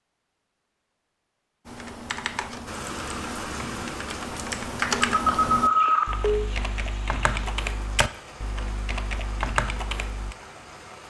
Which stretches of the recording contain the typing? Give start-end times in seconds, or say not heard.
1.6-10.3.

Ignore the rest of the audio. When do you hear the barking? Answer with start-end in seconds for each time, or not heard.
not heard.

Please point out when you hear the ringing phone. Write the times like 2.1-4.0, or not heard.
5.1-6.5.